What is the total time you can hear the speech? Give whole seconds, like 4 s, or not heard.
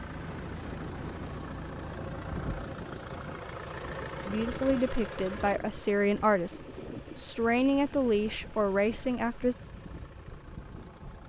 5 s.